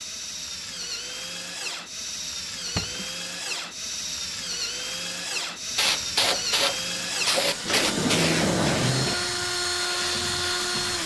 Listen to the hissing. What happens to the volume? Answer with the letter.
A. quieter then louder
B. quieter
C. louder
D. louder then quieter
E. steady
B.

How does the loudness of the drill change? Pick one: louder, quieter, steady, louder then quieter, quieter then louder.
louder.